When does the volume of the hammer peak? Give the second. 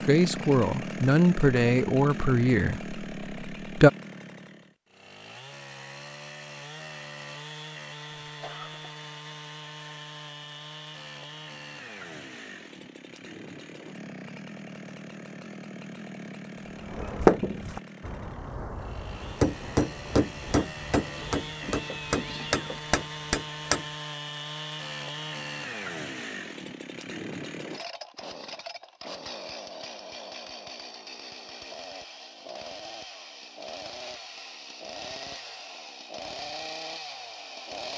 17 s.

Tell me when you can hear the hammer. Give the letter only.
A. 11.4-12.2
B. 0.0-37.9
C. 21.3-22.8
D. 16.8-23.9
D.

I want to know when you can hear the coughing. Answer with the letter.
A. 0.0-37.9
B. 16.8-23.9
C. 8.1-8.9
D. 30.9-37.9
C.